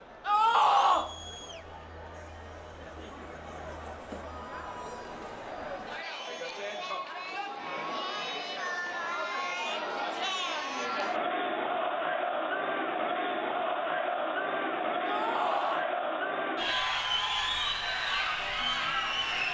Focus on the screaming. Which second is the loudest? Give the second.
1 s.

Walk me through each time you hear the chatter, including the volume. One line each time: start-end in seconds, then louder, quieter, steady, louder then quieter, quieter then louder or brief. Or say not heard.
0.0-19.4 louder.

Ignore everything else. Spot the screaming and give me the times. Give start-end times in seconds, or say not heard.
0.2-1.1, 15.1-15.8.